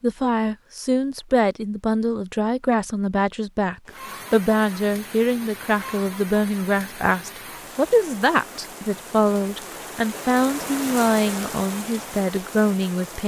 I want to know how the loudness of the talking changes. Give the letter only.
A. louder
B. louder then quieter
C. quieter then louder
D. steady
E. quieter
D.